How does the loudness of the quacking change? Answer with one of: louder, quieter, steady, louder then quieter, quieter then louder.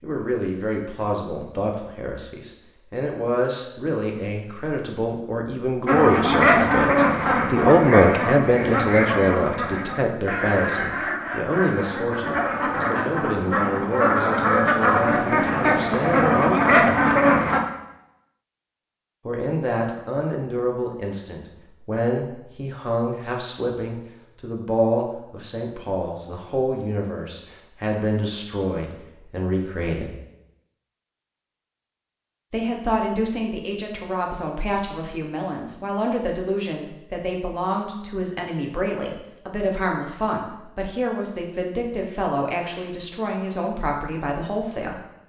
quieter then louder.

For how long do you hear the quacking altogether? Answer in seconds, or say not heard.
12 s.